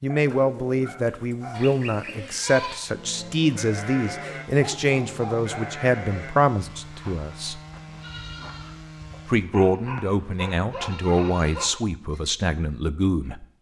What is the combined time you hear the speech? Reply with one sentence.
The speech can be heard for 12 seconds in total.